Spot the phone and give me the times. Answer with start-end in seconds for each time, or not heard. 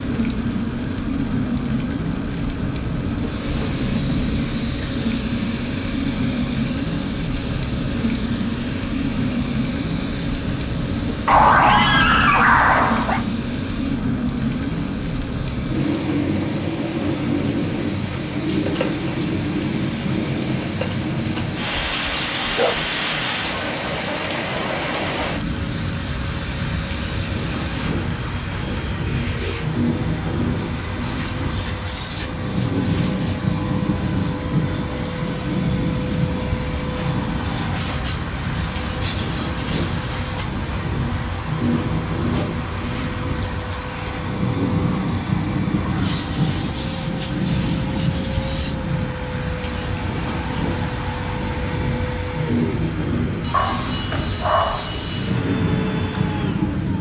not heard.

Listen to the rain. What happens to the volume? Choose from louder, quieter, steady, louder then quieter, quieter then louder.
steady.